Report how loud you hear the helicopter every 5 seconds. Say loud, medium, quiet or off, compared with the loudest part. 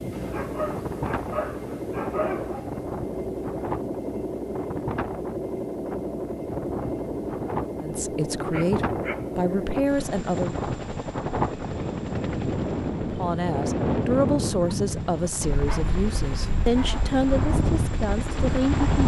loud, loud, medium, medium.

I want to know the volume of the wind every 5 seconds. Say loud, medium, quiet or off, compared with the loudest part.
medium, medium, loud, loud.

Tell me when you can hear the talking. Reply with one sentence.
The talking can be heard from 7.8 to 10.6 s and from 13.1 to 18.9 s.